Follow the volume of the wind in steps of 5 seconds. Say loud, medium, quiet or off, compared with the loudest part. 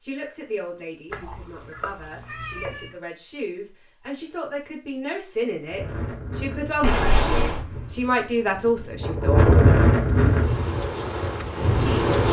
off, loud, loud.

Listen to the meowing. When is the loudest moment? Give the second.
7 s.